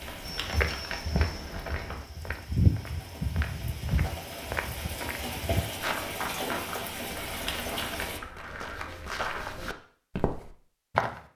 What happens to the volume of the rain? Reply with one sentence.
The volume of the rain goes up.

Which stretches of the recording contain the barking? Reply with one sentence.
You can't hear the barking here.